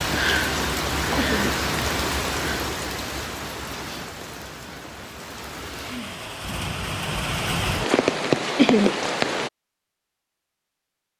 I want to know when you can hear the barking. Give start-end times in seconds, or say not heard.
not heard.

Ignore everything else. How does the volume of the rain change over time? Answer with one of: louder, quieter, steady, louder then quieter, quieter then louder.
quieter then louder.